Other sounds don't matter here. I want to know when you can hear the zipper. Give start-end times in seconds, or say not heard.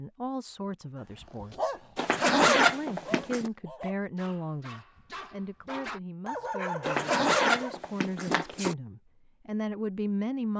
1.9-3.5, 6.8-8.8.